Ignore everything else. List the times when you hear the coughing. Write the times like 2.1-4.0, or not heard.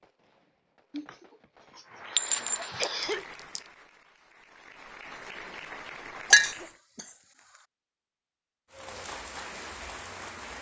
0.9-3.2, 6.3-7.7.